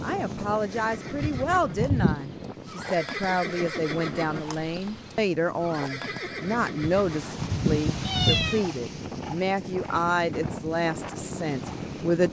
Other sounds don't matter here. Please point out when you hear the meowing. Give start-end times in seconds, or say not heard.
1.2-2.2, 6.8-8.7.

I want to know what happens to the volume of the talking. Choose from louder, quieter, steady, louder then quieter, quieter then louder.
steady.